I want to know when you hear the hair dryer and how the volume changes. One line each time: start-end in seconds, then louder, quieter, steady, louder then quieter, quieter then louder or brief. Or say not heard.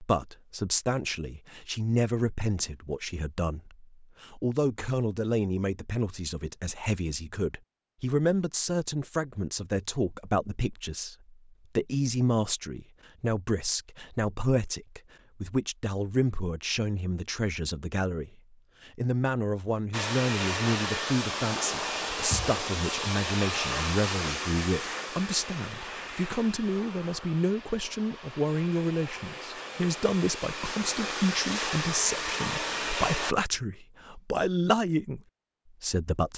19.9-33.4 quieter then louder.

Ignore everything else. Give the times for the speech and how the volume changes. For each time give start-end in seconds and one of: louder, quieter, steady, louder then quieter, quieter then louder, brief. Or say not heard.
0.0-35.2 steady
35.8-36.3 brief.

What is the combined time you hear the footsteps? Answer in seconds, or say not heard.
not heard.